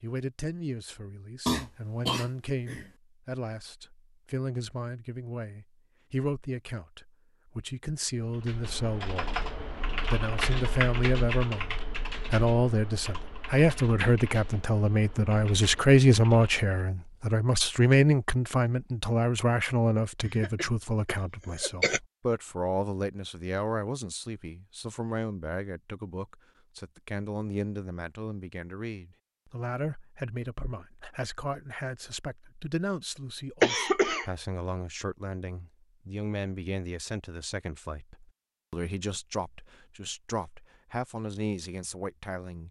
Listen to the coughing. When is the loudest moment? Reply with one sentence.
The volume of the coughing peaks at 34 seconds.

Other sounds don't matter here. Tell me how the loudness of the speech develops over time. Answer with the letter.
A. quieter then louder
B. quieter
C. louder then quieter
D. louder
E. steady
C.